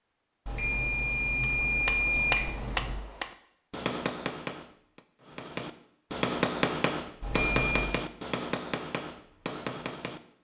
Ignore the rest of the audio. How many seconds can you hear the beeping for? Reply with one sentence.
You can hear the beeping for 3 seconds altogether.